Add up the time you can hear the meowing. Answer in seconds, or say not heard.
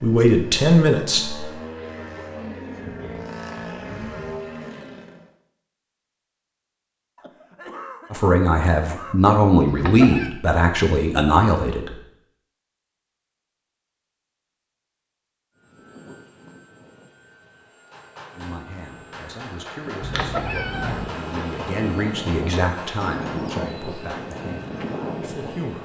2 s.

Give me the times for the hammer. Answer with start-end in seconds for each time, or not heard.
17.9-24.5.